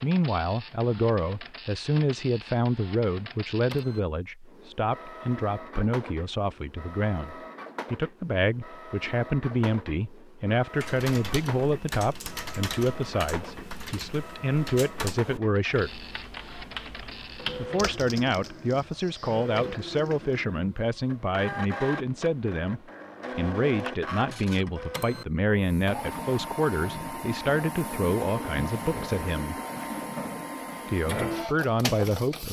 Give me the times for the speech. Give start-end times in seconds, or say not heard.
0.0-16.1, 17.6-29.6, 30.9-32.4.